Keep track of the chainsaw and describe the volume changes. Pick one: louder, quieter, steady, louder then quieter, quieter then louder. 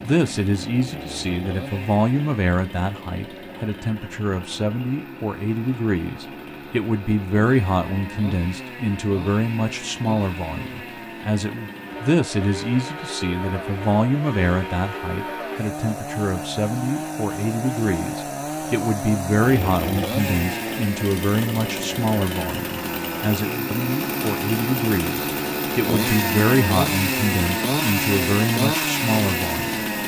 louder.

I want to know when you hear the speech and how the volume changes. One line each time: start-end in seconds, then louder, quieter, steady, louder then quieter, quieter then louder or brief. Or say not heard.
0.0-29.9 steady.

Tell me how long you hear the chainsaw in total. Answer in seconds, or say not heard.
30 s.